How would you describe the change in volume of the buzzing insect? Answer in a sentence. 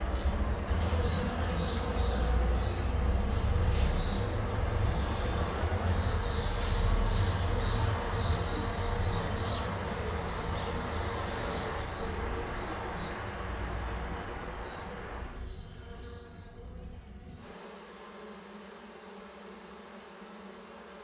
The loudness of the buzzing insect goes down.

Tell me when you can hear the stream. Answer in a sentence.
The stream can be heard from 0.0 to 15.4 s.